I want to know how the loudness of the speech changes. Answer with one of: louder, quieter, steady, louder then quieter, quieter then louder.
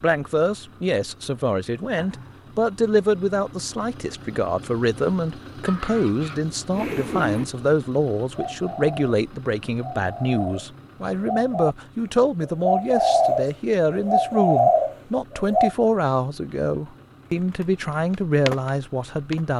steady.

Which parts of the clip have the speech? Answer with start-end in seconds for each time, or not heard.
0.0-19.5.